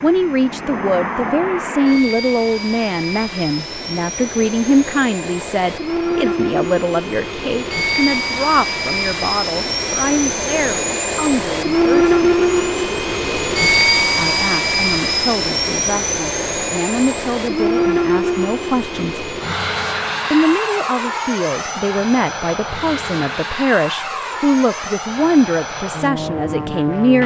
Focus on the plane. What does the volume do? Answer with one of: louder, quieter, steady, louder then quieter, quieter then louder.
louder then quieter.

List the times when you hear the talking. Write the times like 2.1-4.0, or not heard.
0.0-12.1, 14.2-19.3, 20.3-27.2.